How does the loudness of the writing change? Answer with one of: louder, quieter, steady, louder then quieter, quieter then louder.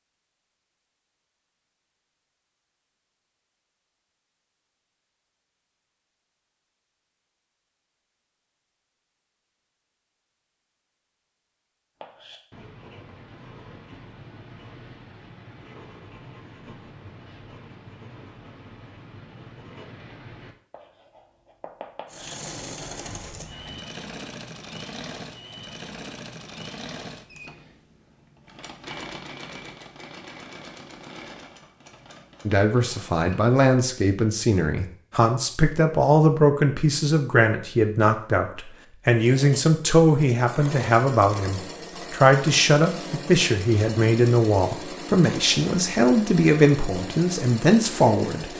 steady.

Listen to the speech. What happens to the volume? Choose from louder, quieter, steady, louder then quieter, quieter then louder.
steady.